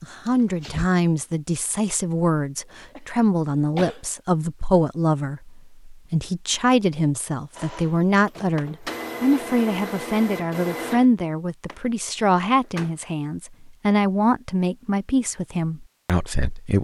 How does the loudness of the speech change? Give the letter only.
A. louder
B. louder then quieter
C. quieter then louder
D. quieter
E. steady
E.